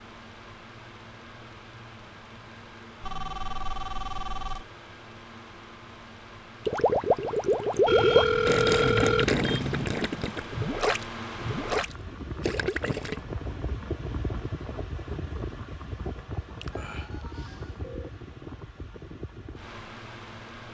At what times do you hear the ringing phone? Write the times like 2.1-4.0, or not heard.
3.0-4.7, 7.8-9.8, 16.6-18.1.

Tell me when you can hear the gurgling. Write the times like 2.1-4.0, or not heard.
6.7-13.2.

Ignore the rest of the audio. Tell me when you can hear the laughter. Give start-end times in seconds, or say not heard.
not heard.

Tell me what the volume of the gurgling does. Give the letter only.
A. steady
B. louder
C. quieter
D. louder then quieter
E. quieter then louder
C.